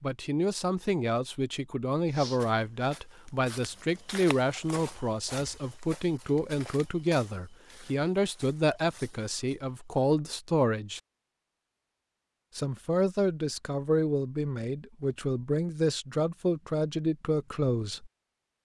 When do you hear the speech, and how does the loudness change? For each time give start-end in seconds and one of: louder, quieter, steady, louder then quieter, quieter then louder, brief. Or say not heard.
0.0-11.0 steady
12.6-18.1 steady.